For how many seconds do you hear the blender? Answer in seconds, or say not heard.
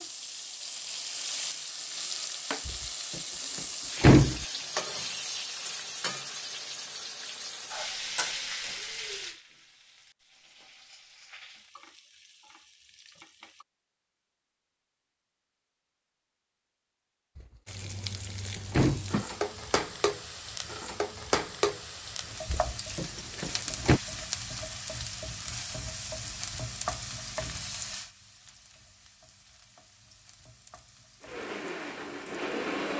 2 s.